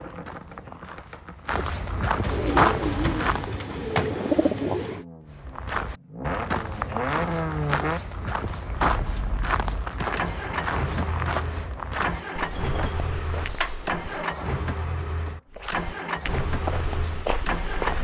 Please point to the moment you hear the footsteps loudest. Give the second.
3 s.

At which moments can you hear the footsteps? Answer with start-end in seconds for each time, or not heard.
0.0-3.6, 5.2-14.2, 15.5-17.9.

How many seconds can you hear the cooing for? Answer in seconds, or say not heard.
5 s.